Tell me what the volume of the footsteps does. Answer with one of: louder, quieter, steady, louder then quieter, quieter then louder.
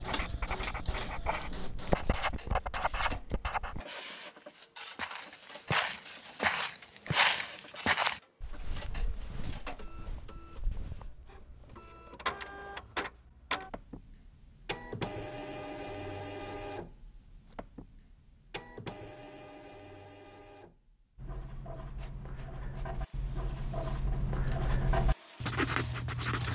quieter.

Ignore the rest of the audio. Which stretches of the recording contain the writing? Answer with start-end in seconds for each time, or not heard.
0.0-3.8, 21.1-26.5.